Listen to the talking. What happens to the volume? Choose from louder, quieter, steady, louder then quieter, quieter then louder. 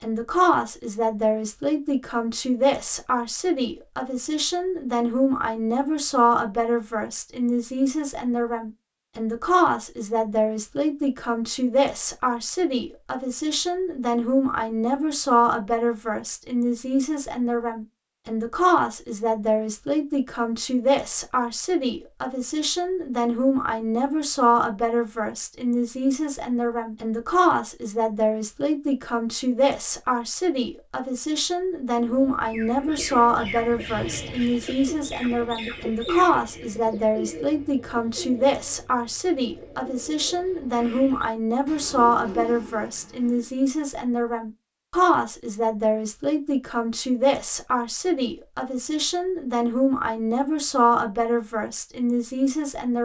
steady.